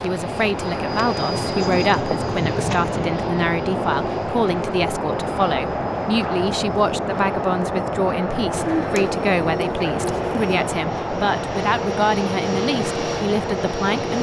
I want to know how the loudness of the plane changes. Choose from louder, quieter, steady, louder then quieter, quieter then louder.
steady.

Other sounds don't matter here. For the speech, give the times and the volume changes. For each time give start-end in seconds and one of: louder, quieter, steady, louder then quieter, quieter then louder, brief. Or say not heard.
0.0-14.1 steady.